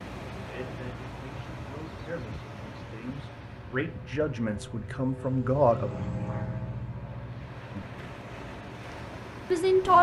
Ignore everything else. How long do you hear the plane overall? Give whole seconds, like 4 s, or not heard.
10 s.